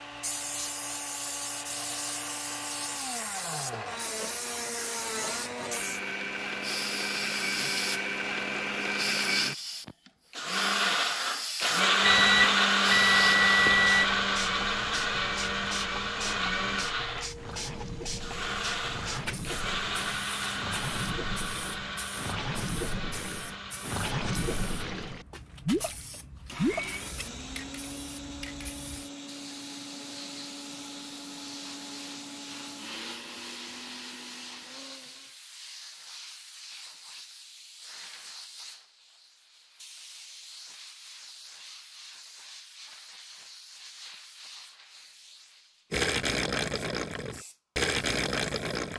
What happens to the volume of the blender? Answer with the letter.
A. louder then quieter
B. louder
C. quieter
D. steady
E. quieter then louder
A.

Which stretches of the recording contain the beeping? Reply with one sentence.
The beeping can be heard from 12.0 to 14.1 s.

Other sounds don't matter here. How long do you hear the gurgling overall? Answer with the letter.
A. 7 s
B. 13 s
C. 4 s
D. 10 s
B.